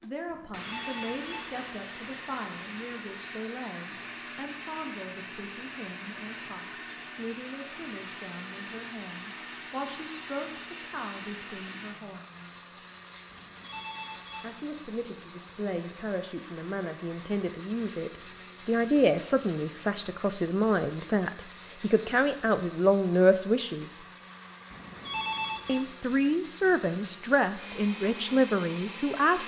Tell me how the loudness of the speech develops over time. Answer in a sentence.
The volume of the speech goes up.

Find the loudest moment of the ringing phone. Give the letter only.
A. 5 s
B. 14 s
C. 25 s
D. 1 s
C.